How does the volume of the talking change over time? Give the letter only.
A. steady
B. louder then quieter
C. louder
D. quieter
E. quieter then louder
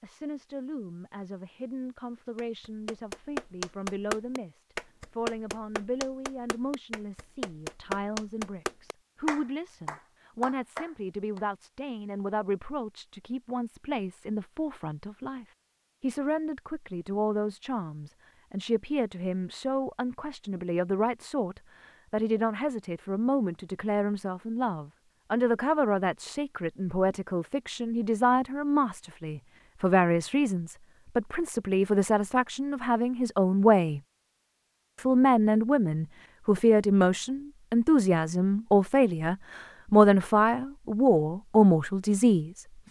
C.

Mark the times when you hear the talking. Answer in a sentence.
The talking can be heard from 0.0 to 34.0 s and from 35.0 to 42.6 s.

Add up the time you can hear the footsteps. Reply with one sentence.
The footsteps can't be heard in this clip.